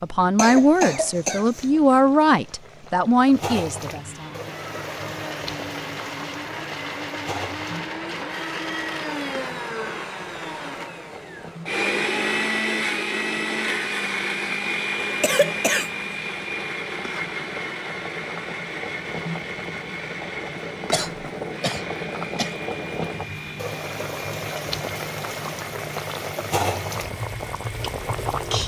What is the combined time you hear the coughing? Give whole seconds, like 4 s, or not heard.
4 s.